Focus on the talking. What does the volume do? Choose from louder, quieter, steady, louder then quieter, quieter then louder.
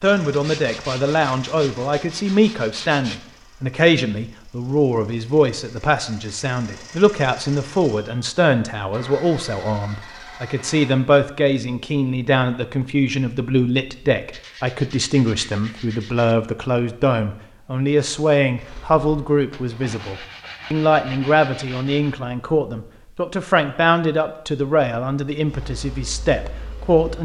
steady.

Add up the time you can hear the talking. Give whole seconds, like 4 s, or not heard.
27 s.